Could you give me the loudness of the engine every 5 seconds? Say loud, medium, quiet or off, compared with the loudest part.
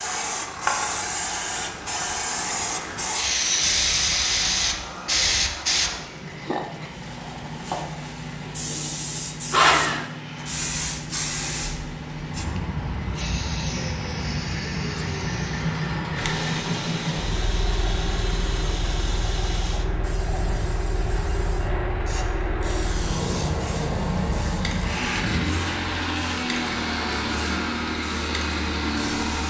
medium, medium, medium, loud, loud, loud.